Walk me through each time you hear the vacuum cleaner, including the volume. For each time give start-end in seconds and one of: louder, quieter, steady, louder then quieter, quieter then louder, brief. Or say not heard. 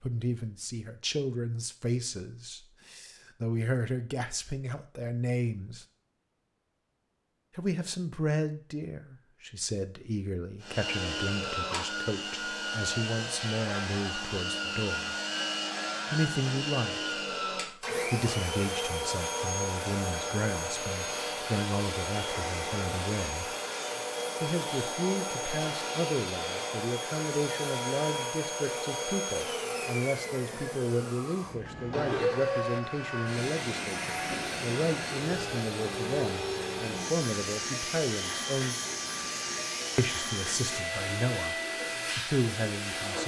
10.6-43.2 steady.